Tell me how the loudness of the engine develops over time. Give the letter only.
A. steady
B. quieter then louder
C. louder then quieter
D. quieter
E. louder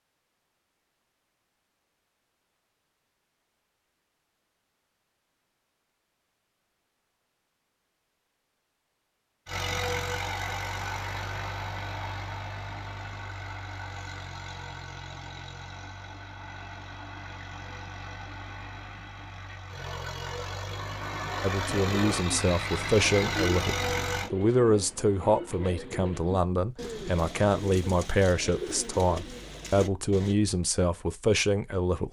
B.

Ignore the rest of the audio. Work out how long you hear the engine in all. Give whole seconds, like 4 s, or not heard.
15 s.